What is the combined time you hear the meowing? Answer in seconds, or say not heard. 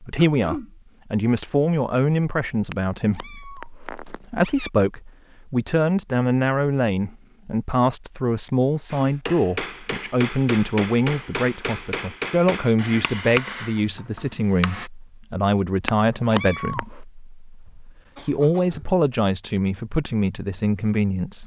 3 s.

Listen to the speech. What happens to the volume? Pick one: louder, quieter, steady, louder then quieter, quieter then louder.
steady.